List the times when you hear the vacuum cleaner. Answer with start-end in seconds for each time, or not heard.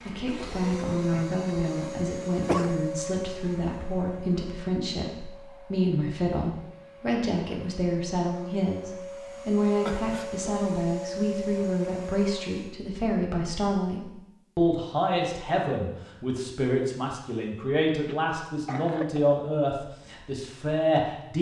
0.0-12.8.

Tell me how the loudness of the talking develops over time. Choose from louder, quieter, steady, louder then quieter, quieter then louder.
steady.